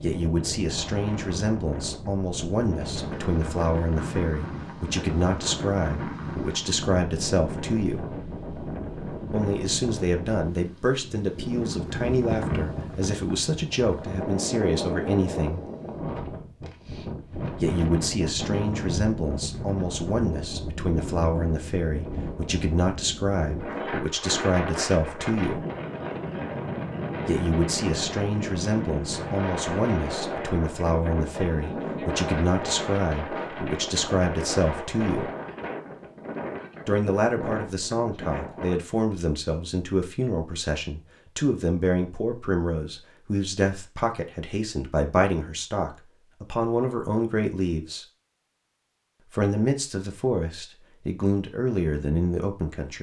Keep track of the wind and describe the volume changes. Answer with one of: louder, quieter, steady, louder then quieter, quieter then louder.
steady.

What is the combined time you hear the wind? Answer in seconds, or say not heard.
39 s.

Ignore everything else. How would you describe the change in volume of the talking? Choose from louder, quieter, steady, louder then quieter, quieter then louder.
steady.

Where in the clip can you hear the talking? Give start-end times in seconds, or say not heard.
0.0-8.1, 9.3-15.7, 17.6-25.6, 27.2-35.3, 36.9-48.0, 49.3-52.9.